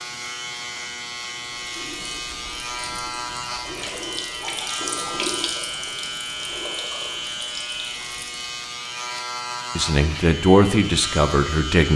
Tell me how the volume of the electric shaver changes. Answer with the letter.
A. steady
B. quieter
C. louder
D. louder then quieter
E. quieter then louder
A.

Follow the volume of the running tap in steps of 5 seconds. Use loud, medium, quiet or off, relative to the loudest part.
loud, loud, off.